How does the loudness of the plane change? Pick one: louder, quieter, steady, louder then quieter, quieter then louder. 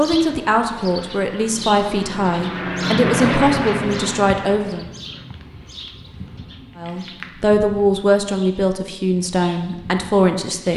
louder then quieter.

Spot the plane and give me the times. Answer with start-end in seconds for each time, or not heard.
0.0-5.1.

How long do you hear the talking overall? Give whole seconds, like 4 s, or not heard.
9 s.